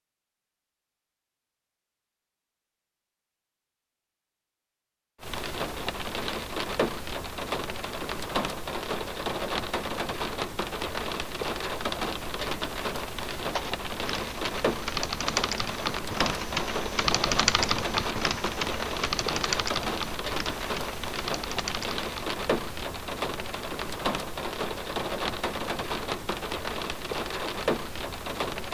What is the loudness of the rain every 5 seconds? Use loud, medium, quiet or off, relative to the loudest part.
off, loud, loud, loud, loud, loud.